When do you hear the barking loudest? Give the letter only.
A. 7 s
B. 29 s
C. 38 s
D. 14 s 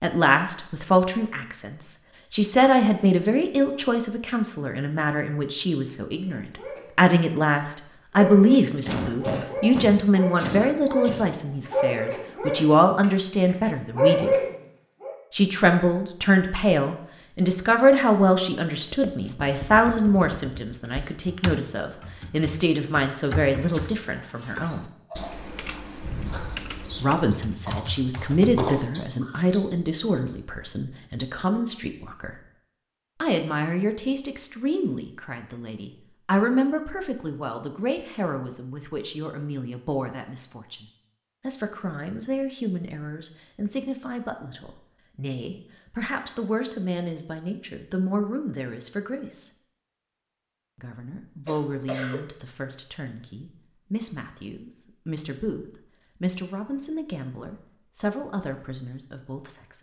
D.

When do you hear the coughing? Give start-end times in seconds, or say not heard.
8.8-11.2, 51.5-52.2.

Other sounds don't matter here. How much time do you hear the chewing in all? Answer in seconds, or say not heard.
6 s.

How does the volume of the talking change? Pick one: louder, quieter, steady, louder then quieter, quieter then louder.
quieter.